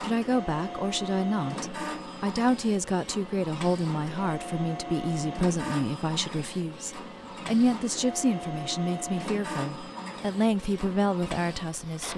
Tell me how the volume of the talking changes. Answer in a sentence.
The loudness of the talking stays about the same.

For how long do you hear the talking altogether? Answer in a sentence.
The talking can be heard for 12 seconds in total.